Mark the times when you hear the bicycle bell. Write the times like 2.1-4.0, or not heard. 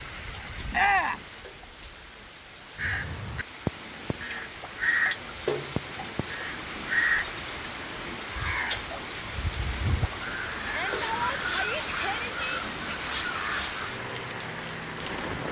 not heard.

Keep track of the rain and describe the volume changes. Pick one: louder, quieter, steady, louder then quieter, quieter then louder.
louder.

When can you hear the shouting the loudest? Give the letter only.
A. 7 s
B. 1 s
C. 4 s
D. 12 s
B.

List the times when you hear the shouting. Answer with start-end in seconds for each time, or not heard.
0.7-1.2, 10.6-12.6.